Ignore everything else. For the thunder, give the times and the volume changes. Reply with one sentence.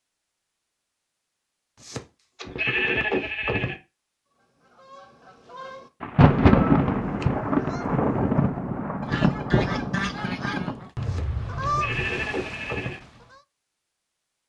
You can hear the thunder from 6.0 to 10.8 s, getting quieter.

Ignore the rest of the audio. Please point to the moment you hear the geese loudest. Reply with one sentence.
The volume of the geese peaks at 12 seconds.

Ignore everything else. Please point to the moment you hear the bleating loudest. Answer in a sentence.
The volume of the bleating peaks at 3 seconds.